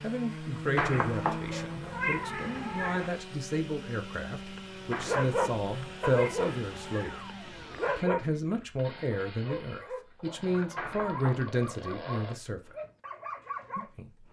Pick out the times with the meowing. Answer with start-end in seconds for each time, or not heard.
0.8-3.1, 4.9-7.2, 10.8-11.6.